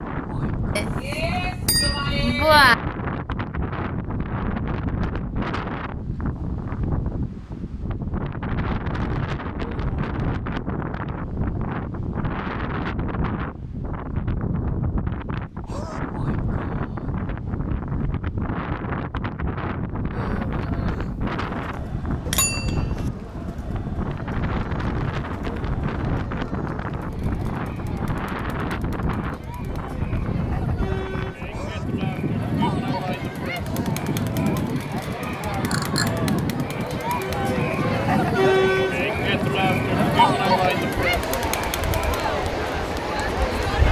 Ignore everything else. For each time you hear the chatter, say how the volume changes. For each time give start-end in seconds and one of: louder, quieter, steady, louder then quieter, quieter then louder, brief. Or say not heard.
20.1-43.8 louder.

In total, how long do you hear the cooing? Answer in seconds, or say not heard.
not heard.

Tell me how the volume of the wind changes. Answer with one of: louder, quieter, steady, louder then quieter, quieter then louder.
steady.